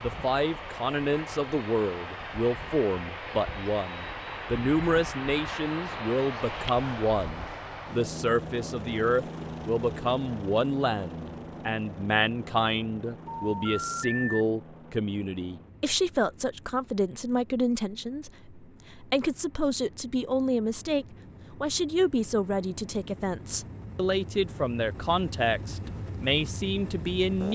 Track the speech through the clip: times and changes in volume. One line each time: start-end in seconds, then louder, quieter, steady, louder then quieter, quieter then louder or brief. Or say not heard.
0.0-27.5 steady.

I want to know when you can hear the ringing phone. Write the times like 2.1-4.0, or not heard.
13.2-14.4.